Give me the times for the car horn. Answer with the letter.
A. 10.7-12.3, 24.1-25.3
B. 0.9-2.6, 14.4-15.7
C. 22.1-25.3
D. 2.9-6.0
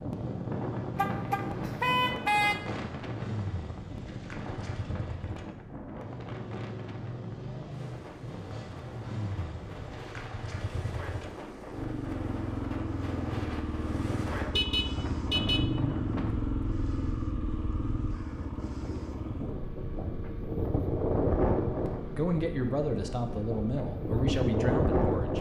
B.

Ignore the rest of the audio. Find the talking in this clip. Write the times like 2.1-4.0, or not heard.
22.1-25.3.